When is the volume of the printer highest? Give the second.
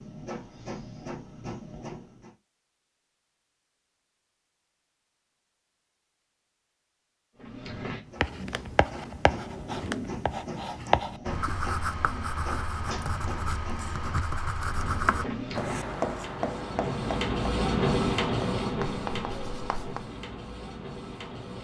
18 s.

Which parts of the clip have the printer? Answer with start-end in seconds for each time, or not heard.
0.0-2.4, 7.3-21.5.